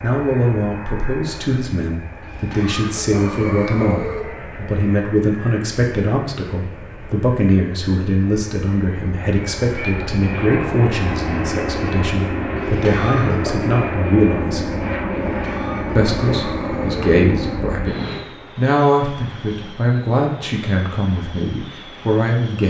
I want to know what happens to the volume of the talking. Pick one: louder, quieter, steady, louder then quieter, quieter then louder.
steady.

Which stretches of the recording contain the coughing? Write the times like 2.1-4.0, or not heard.
2.2-4.2, 12.6-13.6, 15.2-17.1.